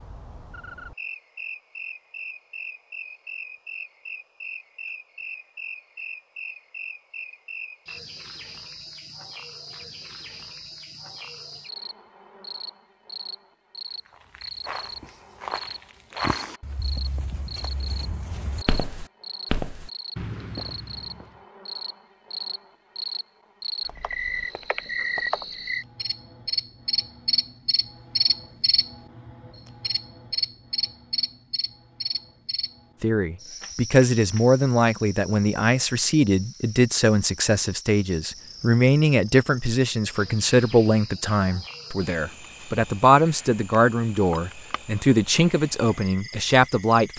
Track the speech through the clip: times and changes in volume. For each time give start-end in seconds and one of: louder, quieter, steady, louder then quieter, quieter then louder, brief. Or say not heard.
33.0-47.1 steady.